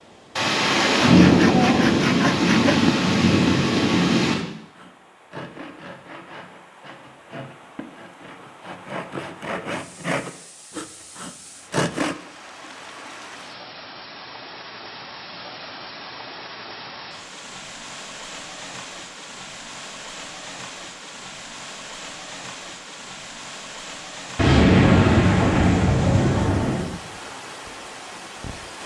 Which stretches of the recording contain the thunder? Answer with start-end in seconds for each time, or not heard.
0.3-4.3, 24.4-26.9.